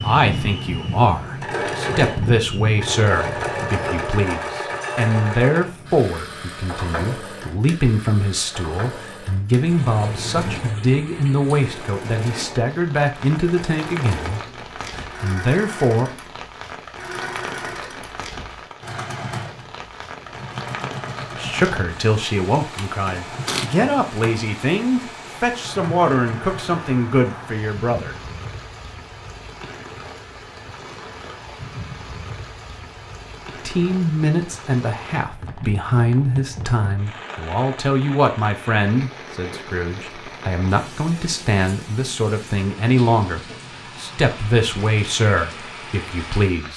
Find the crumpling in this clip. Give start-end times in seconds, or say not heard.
23.4-24.4.